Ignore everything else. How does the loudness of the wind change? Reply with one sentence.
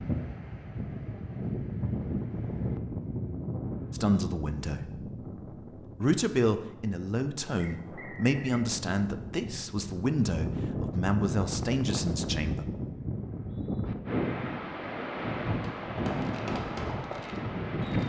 The loudness of the wind goes down, then up.